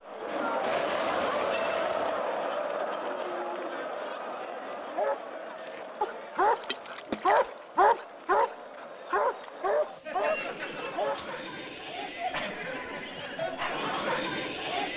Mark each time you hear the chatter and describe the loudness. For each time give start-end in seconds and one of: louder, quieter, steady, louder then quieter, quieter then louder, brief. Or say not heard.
0.1-14.9 quieter then louder.